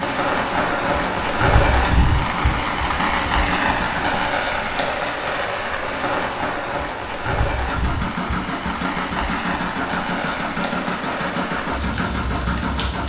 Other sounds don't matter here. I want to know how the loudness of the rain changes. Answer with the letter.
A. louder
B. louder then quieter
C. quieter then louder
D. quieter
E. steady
D.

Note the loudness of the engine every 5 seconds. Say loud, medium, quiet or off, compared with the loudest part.
medium, loud, loud.